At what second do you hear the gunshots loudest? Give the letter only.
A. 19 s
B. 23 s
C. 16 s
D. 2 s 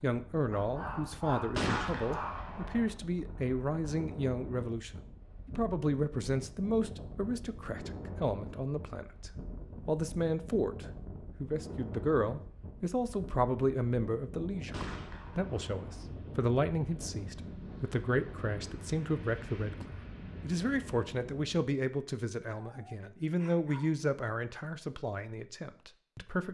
D.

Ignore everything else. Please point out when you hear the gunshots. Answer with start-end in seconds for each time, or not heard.
1.5-2.9, 14.7-16.1.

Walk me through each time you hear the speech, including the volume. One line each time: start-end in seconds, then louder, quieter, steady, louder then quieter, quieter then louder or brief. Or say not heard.
0.0-26.4 steady.